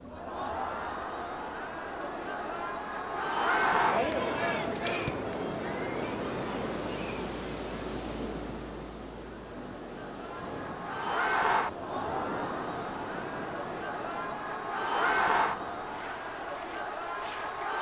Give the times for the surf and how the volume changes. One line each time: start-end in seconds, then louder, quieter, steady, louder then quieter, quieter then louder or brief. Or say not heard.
0.0-17.7 louder then quieter.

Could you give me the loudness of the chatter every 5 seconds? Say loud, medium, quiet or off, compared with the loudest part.
loud, medium, loud, loud.